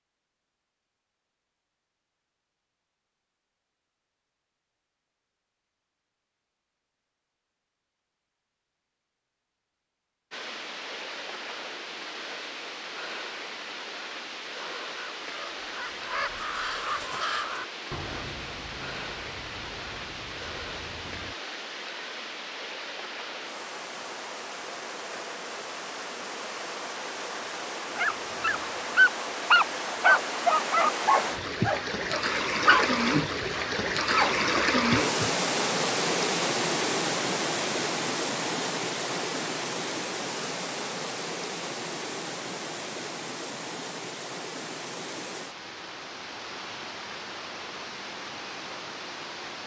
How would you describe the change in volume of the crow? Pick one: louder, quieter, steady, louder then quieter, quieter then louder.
louder then quieter.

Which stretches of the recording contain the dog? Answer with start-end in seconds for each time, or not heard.
27.9-35.3.